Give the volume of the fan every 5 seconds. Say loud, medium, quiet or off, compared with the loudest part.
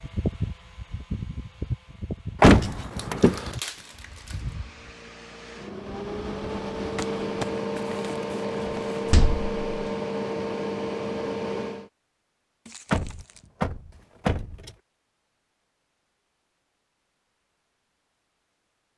medium, loud, loud, off.